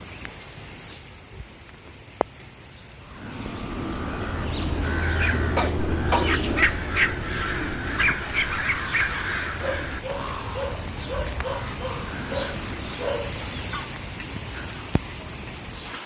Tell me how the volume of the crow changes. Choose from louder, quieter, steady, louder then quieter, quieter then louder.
quieter.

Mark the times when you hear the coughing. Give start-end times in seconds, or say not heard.
5.5-6.3.